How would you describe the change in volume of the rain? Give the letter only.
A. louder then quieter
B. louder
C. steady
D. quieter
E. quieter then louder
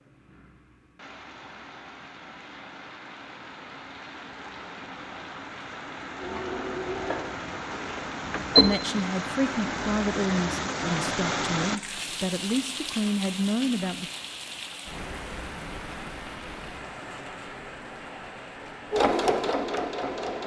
A.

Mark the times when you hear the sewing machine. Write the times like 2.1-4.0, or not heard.
6.2-8.8, 18.9-20.4.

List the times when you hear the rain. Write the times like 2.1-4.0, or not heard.
0.0-20.4.